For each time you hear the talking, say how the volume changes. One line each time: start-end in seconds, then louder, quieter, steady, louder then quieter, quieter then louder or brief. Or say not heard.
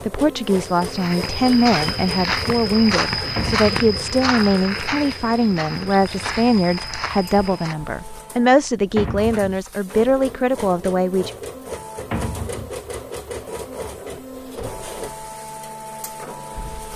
0.0-11.3 steady.